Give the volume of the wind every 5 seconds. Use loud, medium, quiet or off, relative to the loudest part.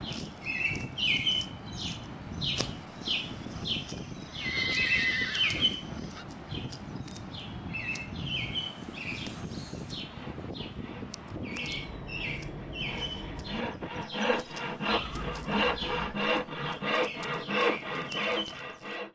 loud, loud, loud, off.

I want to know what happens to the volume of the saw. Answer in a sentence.
The volume of the saw goes up.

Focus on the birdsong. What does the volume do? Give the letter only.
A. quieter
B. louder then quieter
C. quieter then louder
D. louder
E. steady
A.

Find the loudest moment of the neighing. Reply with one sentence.
The loudest moment of the neighing is at 5 seconds.